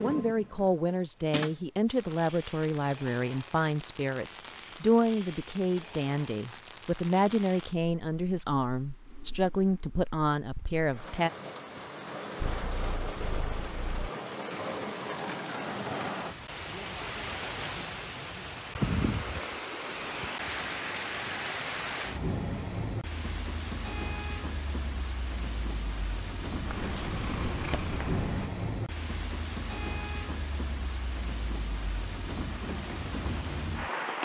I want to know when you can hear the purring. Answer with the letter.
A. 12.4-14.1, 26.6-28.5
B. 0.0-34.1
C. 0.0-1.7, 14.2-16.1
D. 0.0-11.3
A.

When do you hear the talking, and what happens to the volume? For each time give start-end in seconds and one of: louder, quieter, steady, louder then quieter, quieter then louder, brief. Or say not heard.
0.0-11.3 steady.